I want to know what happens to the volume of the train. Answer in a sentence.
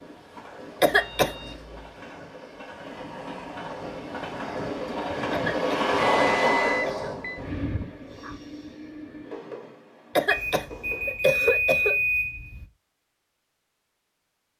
The volume of the train goes up, then down.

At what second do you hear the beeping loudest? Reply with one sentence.
The loudest moment of the beeping is at 12 seconds.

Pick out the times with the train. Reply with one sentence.
You can hear the train from 0.0 to 11.2 s.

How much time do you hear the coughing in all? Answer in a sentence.
The coughing can be heard for 4 seconds in total.